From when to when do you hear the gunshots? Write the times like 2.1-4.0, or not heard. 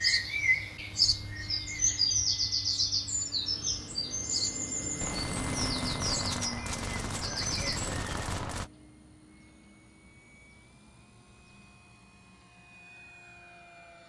5.0-8.7.